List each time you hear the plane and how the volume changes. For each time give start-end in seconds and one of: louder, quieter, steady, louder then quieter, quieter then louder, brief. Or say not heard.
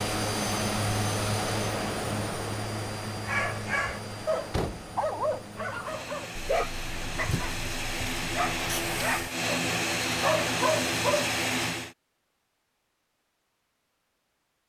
0.0-11.9 quieter then louder.